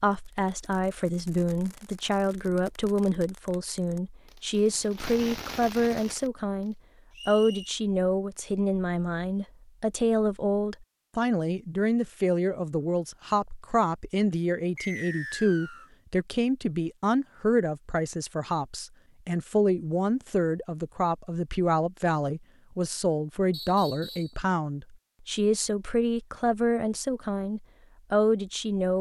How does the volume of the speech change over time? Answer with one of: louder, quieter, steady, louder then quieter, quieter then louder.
steady.